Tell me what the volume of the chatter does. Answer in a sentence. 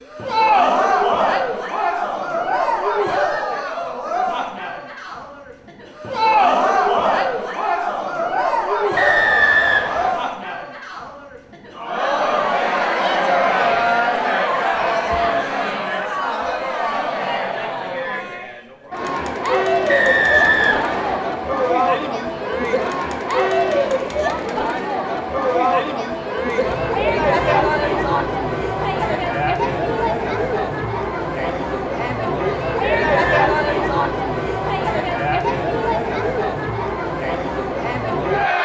The volume of the chatter stays about the same.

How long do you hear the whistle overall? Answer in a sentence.
You can hear the whistle for 3 seconds altogether.